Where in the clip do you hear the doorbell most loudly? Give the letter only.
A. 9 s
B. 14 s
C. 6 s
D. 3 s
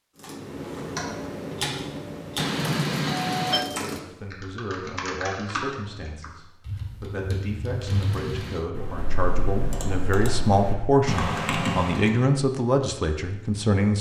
D.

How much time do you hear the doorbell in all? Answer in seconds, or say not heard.
2 s.